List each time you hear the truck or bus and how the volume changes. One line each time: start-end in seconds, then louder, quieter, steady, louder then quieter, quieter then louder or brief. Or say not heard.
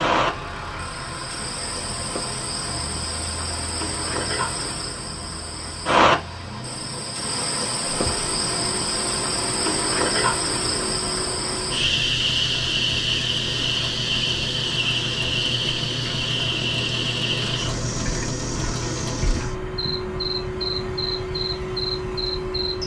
0.1-22.8 louder.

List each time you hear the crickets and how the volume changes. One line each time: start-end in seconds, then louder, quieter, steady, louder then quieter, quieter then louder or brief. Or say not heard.
0.0-22.8 louder then quieter.